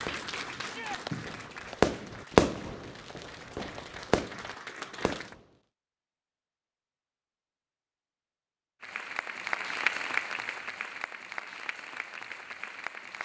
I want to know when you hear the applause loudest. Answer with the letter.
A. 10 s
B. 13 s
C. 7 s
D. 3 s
A.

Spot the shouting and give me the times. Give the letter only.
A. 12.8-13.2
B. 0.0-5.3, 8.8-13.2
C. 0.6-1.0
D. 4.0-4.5
C.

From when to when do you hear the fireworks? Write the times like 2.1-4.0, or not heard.
0.1-5.4.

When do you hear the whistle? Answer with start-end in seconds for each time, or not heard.
not heard.